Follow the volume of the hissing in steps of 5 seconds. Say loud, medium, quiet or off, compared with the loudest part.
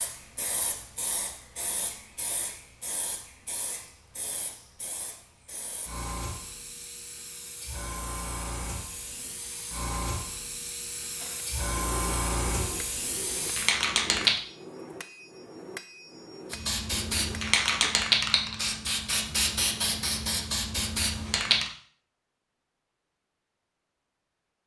quiet, quiet, loud, loud, loud.